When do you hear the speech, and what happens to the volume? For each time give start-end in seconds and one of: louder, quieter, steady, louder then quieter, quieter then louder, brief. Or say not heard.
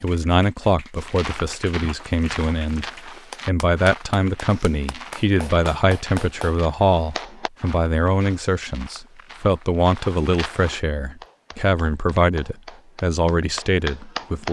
0.0-14.4 steady.